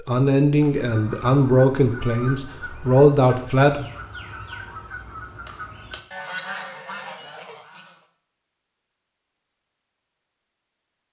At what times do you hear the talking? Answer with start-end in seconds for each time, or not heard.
0.0-3.9.